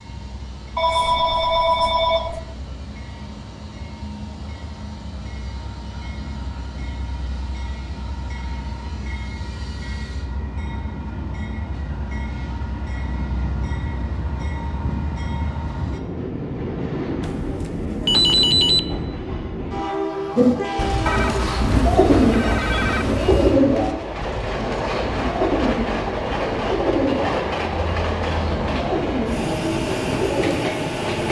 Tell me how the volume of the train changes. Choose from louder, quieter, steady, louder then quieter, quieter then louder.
louder.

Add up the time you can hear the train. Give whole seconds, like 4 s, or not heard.
31 s.